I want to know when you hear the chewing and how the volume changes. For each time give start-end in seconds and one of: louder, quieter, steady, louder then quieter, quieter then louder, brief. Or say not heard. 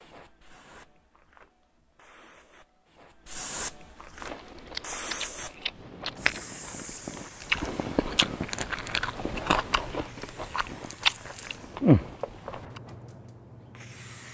4.2-12.8 louder.